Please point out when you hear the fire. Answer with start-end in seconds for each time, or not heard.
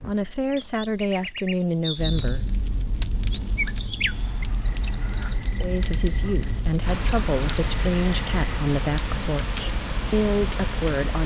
1.9-11.2.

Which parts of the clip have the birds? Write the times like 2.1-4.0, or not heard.
0.0-8.6.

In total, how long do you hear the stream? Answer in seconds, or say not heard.
7 s.